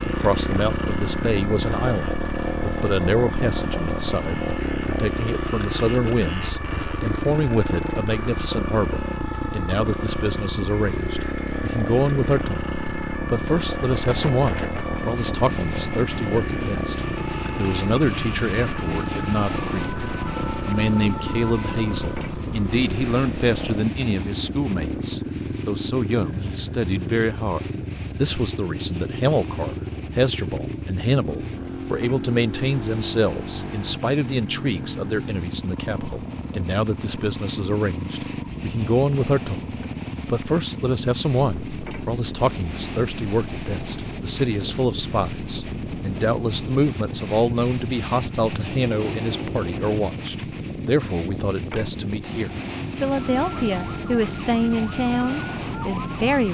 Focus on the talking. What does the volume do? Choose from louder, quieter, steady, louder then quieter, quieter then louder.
steady.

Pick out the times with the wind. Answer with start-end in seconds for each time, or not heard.
13.9-56.4.